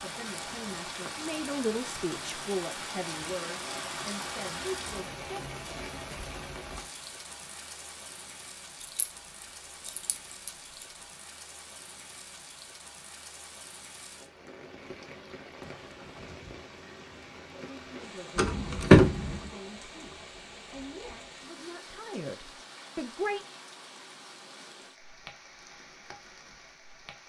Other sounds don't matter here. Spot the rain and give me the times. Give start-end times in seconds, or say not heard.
0.0-27.2.